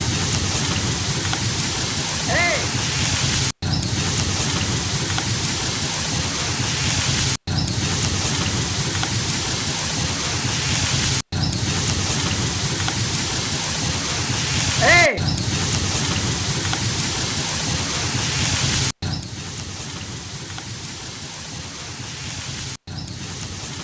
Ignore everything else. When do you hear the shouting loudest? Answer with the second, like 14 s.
15 s.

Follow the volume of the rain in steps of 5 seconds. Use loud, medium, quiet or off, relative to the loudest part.
loud, loud, loud, loud, medium.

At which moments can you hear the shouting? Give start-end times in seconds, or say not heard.
2.2-2.8, 14.8-15.2.